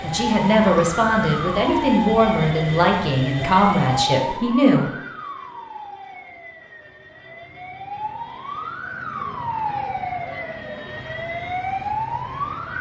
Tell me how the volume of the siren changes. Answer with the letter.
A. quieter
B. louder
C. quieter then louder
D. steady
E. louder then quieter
C.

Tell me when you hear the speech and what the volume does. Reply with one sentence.
You can hear the speech from 0.0 to 4.9 s, at a steady volume.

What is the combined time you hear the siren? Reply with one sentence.
You can hear the siren for 13 seconds altogether.